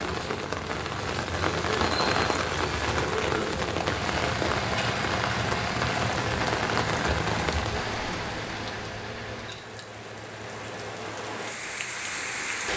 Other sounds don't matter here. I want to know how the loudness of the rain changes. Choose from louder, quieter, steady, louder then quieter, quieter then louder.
quieter.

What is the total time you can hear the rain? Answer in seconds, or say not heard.
13 s.